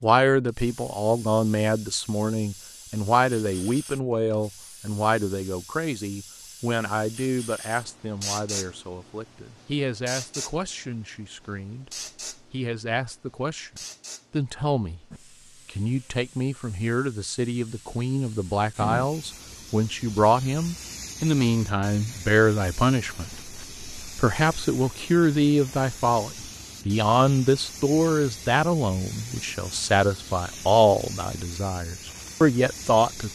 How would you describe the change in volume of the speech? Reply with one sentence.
The volume of the speech goes down, then up.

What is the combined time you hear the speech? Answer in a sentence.
You can hear the speech for 33 seconds altogether.